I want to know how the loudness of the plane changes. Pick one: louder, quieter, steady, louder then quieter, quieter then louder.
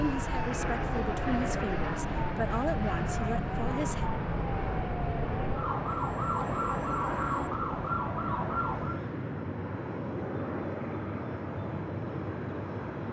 steady.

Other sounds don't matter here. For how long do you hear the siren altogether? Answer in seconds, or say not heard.
9 s.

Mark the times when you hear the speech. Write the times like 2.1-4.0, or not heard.
0.0-4.1.